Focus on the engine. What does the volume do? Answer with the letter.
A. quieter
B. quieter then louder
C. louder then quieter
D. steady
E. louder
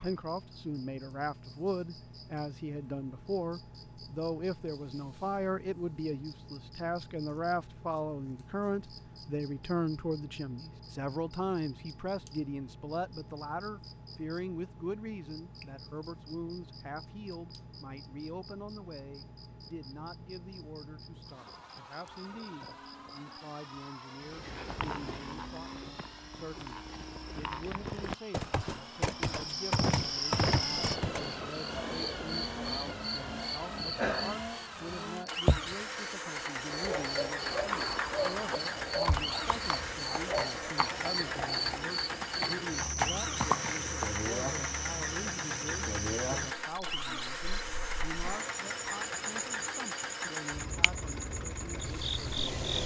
E.